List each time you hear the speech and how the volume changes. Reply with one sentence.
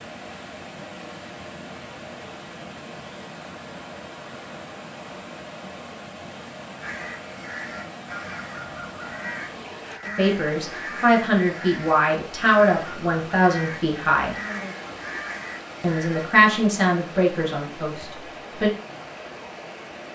The speech can be heard from 10.2 to 14.3 s, at a steady volume; and briefly from 15.8 to 18.7 s.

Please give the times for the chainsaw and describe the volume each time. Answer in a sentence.
You can't hear the chainsaw here.